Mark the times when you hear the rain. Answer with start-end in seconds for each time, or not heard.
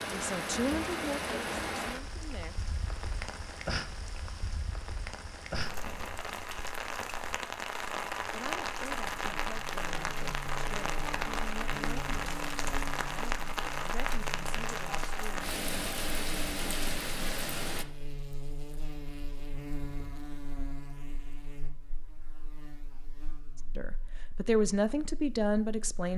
0.0-17.9.